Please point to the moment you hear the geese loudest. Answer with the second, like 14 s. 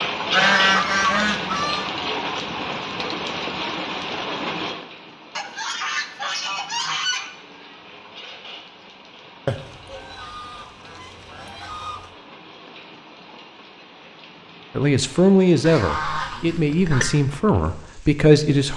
1 s.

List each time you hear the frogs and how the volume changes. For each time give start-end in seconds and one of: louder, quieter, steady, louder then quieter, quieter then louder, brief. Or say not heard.
not heard.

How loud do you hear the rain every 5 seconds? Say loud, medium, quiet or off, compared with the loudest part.
loud, quiet, quiet, quiet.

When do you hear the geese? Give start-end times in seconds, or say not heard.
0.3-1.9, 5.3-7.3, 9.4-12.1, 15.7-17.1.